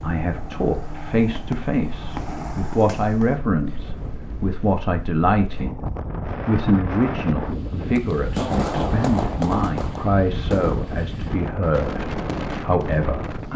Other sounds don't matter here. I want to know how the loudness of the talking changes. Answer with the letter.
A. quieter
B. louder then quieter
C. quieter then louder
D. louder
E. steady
E.